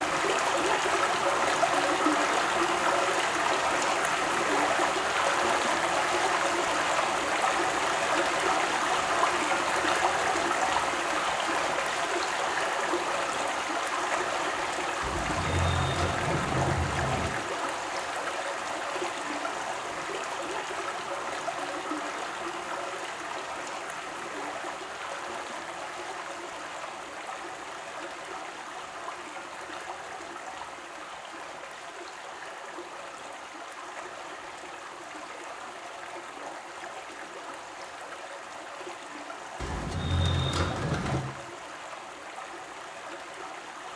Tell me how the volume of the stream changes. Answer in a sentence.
The volume of the stream goes down.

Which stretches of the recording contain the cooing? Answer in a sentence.
You can hear the cooing from 15.0 to 17.4 s and from 39.5 to 41.2 s.